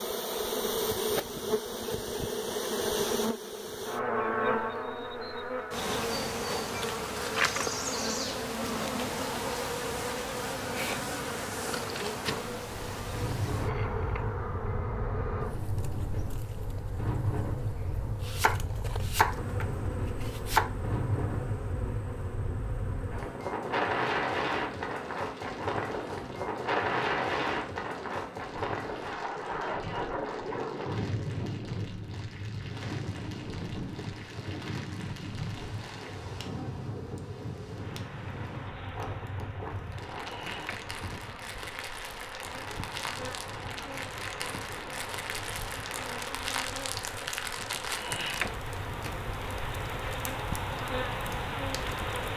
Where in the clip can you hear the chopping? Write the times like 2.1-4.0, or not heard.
18.2-20.7.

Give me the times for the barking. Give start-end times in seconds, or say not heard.
not heard.